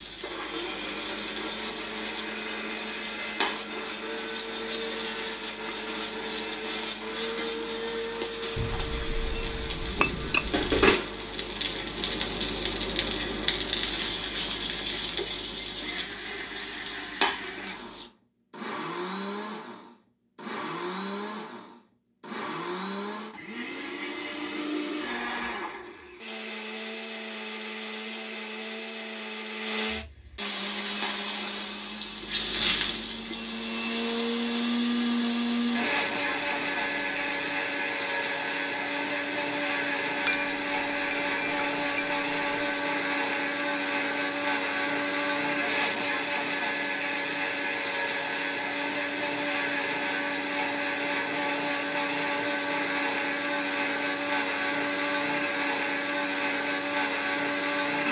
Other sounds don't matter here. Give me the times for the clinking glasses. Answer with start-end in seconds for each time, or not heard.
8.6-11.0, 40.2-42.8.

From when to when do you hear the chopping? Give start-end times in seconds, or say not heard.
not heard.